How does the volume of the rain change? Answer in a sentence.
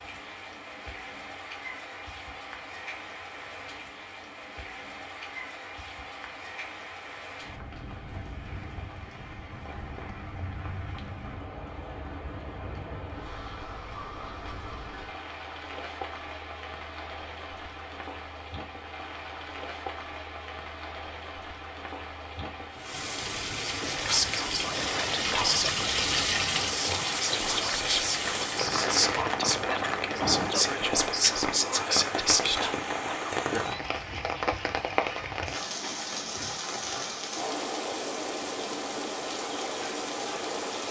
The volume of the rain goes up.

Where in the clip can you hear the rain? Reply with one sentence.
The rain can be heard from 0.0 to 40.8 s.